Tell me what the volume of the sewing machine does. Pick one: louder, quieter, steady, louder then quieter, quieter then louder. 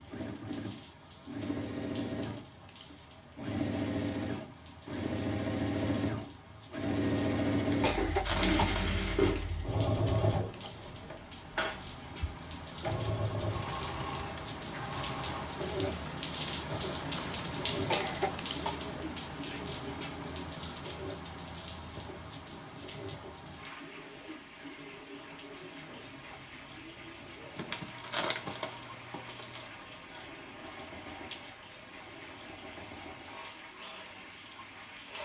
quieter.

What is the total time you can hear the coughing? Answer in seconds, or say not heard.
2 s.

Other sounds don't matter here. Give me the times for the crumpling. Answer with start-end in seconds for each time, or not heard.
7.7-9.4, 27.6-29.7.